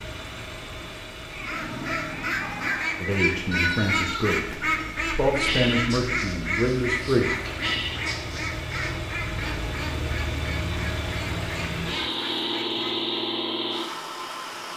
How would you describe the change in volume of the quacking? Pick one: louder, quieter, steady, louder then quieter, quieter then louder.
quieter.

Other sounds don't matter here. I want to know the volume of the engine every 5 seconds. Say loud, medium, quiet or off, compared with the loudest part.
medium, medium, loud.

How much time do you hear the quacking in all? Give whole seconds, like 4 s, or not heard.
12 s.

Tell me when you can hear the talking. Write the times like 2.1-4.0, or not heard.
3.0-7.3.